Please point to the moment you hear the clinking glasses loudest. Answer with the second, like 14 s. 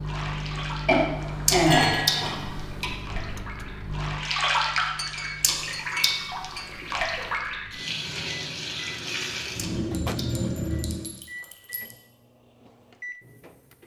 2 s.